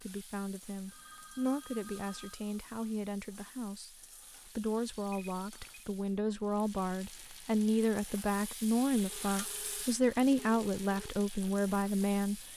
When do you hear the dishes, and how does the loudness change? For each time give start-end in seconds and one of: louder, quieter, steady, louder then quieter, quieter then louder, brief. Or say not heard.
not heard.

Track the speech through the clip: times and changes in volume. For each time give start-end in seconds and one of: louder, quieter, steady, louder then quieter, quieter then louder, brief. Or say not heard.
0.0-12.5 louder.